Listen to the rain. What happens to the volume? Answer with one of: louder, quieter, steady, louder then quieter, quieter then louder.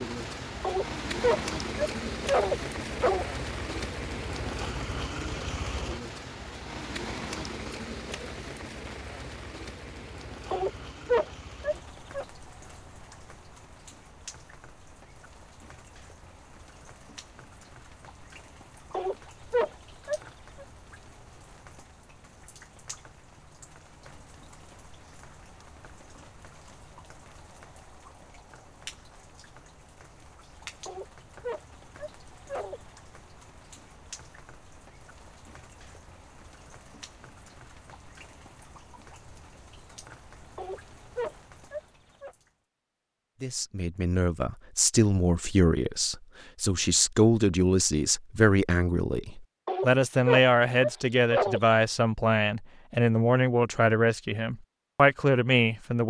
quieter.